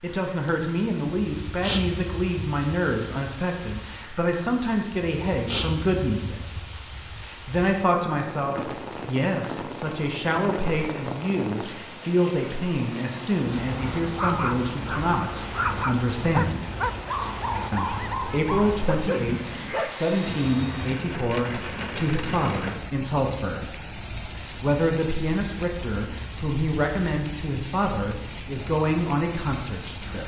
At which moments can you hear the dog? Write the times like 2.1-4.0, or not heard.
13.8-19.9.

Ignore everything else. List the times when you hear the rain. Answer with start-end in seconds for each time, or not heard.
0.0-30.2.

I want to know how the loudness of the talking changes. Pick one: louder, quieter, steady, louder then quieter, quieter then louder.
steady.